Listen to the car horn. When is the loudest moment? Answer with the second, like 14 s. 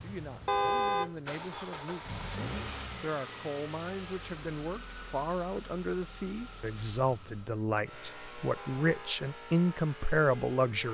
1 s.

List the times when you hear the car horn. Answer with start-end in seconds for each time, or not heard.
0.5-1.1, 8.6-9.2.